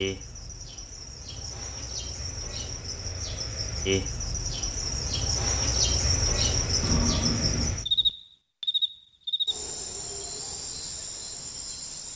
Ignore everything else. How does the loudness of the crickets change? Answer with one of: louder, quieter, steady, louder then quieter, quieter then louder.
louder then quieter.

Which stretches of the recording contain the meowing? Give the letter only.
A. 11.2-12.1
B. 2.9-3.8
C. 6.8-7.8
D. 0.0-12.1
C.